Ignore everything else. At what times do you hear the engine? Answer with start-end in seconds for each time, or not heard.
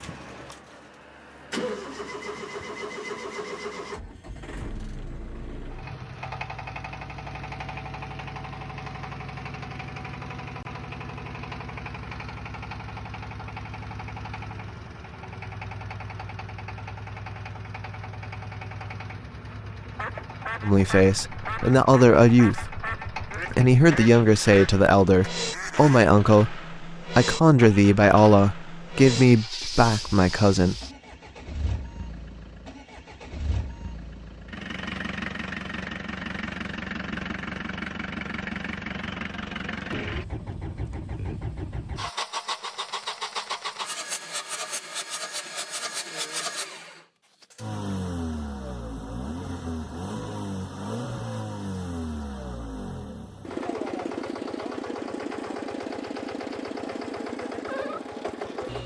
0.0-58.8.